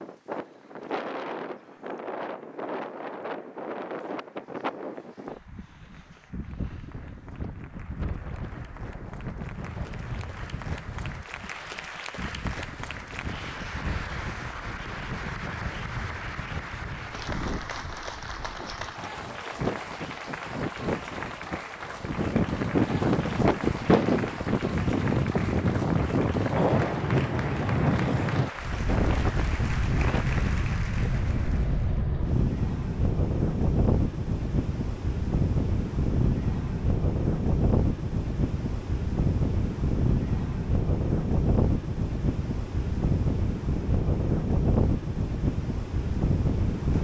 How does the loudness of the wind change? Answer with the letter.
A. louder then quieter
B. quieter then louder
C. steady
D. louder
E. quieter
D.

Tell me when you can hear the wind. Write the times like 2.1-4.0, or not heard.
0.0-46.9.